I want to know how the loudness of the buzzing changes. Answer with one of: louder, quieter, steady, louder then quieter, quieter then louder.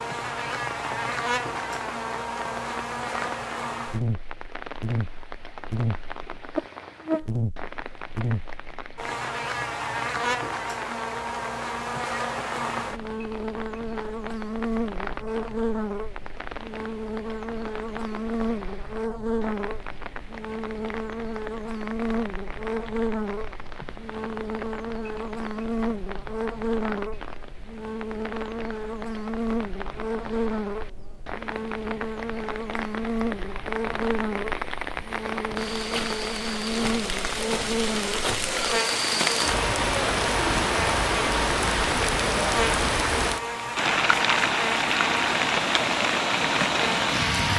steady.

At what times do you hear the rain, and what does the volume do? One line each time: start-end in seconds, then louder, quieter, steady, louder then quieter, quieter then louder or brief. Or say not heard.
0.0-47.5 louder.